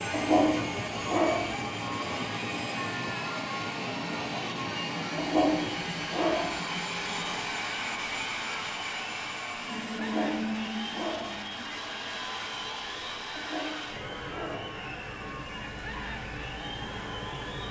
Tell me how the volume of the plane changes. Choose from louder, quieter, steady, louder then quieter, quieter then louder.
quieter.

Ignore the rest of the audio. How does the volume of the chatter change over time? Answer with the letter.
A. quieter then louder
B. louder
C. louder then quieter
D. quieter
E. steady
E.